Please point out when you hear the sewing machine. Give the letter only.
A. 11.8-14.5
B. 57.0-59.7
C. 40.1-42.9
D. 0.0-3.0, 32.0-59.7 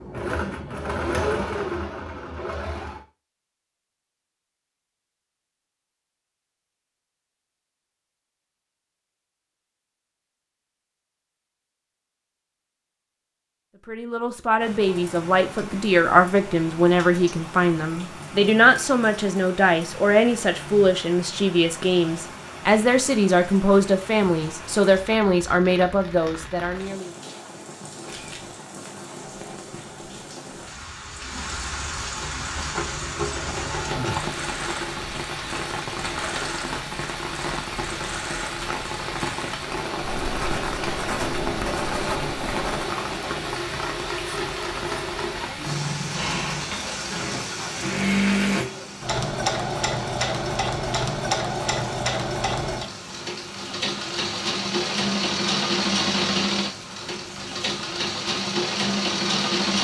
D.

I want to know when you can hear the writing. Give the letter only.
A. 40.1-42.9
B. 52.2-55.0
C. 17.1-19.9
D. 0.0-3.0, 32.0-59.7
A.